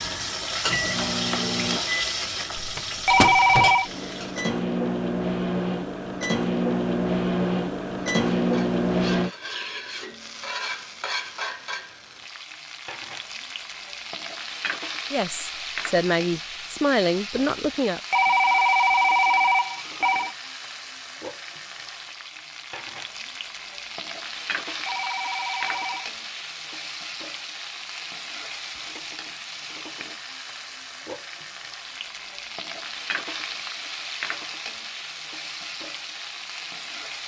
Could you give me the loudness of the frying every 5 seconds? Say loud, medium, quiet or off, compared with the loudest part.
loud, medium, medium, medium, medium, medium, medium, medium.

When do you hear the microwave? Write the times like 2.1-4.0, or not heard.
0.0-9.3.